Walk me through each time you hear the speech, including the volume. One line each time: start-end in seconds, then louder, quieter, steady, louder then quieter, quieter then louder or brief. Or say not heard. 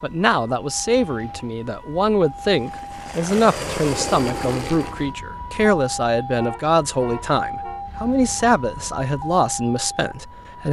0.0-10.6 steady.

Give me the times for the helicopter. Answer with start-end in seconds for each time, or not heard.
2.4-5.2.